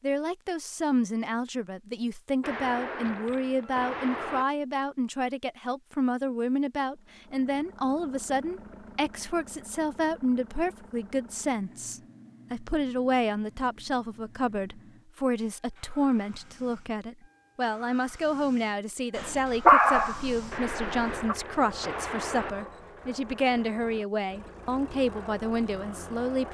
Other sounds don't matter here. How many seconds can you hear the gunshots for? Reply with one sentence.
The gunshots can be heard for 4 seconds in total.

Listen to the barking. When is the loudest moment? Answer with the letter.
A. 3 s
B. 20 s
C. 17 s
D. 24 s
B.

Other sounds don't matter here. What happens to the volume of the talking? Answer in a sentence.
The loudness of the talking stays about the same.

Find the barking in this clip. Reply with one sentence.
The barking can be heard from 19.1 to 21.4 s.